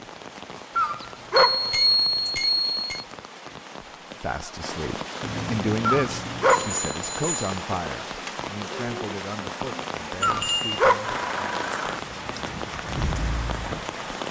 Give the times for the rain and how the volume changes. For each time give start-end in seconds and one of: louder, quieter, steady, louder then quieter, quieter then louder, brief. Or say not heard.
0.0-14.2 louder.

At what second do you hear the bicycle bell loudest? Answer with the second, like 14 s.
2 s.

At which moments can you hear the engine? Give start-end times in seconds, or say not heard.
11.0-14.1.